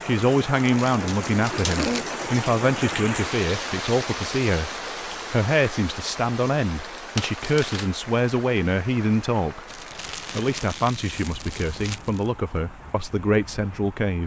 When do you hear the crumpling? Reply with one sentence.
The crumpling can be heard from 0.8 to 2.0 s, from 7.2 to 7.9 s and from 9.7 to 12.3 s.